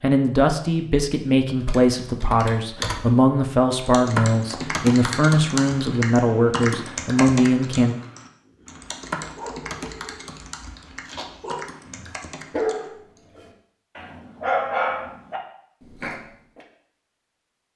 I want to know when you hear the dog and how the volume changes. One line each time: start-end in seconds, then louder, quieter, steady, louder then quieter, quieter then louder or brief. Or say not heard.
8.4-16.6 louder.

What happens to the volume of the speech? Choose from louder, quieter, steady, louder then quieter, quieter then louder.
steady.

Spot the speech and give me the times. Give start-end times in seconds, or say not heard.
0.0-8.0.